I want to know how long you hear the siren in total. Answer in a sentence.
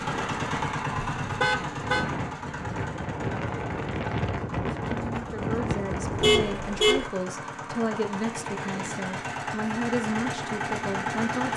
The siren can't be heard in this clip.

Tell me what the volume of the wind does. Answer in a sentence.
The volume of the wind goes up.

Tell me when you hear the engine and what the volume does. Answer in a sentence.
You can hear the engine from 0.0 to 11.5 s, getting quieter then louder.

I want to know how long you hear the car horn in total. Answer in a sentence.
You can hear the car horn for 2 seconds altogether.